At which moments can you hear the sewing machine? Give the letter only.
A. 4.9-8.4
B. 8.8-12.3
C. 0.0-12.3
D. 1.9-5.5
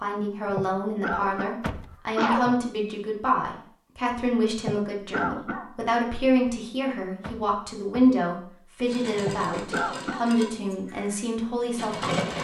B.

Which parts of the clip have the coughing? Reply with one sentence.
You can hear the coughing from 0.5 to 2.5 s, from 4.6 to 5.9 s and from 9.2 to 10.3 s.